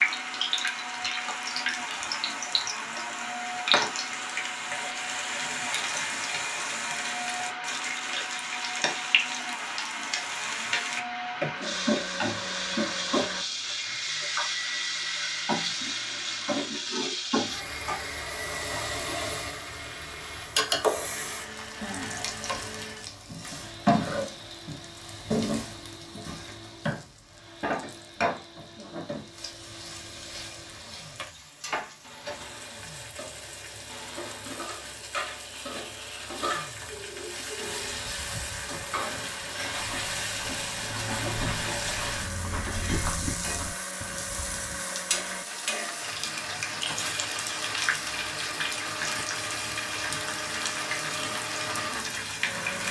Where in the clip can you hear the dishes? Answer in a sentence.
The dishes can't be heard in this clip.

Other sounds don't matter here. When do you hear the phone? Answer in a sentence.
You can hear the phone from 36.9 to 38.0 s.